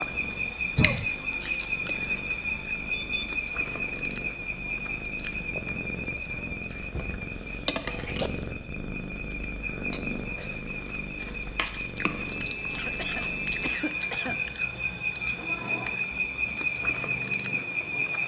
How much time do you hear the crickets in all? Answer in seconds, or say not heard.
18 s.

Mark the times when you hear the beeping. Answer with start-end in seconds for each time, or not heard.
2.9-3.4, 12.3-13.8.